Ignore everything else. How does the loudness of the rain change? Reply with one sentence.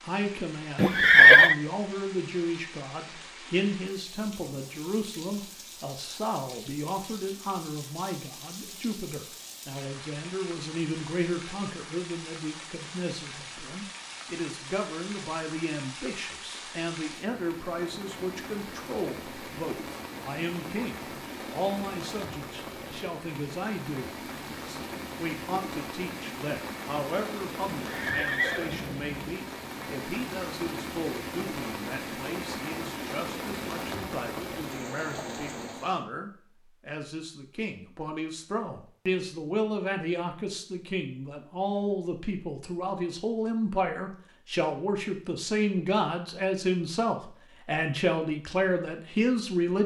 The loudness of the rain goes up.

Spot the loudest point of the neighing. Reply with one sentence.
The loudest moment of the neighing is at 1 second.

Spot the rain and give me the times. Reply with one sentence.
You can hear the rain from 0.0 to 36.0 s.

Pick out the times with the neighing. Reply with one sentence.
You can hear the neighing from 0.8 to 1.6 s and from 27.8 to 29.4 s.